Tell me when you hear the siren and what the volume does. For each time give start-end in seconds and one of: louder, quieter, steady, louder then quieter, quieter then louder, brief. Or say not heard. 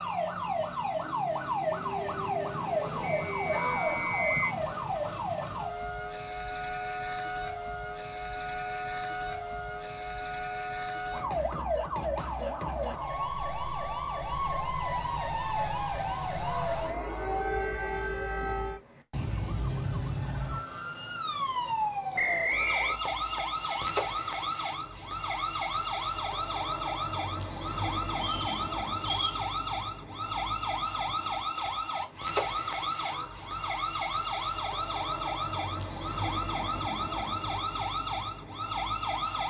0.0-39.4 steady.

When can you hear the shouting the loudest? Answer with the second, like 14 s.
4 s.